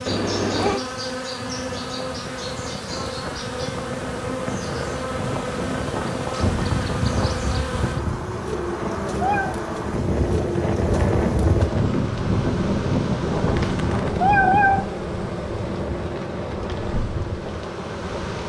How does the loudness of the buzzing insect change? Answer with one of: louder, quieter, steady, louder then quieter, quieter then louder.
steady.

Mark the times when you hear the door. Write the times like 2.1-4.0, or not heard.
not heard.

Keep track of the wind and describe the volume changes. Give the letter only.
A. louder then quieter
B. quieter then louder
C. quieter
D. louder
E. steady
A.